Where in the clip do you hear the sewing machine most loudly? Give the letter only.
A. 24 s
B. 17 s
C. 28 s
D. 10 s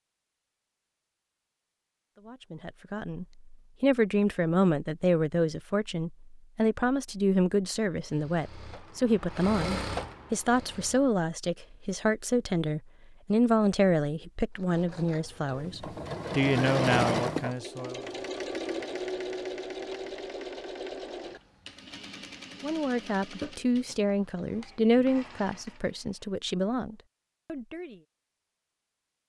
B.